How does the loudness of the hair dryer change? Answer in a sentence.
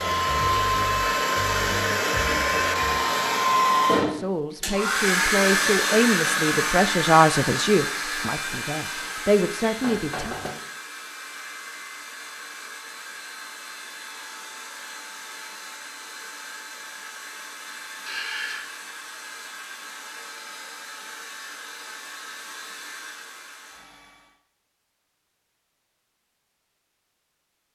The volume of the hair dryer goes down.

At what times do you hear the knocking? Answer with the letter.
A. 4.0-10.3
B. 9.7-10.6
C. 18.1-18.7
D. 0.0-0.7
B.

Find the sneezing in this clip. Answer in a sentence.
The sneezing can be heard from 18.1 to 18.7 s.